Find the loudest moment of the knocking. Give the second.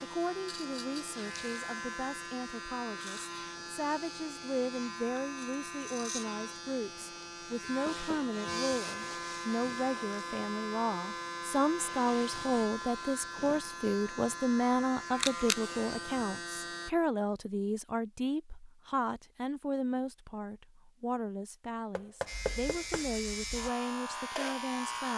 22 s.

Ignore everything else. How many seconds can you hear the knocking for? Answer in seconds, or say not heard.
2 s.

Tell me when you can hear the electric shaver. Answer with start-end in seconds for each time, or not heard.
0.0-16.9, 22.2-25.1.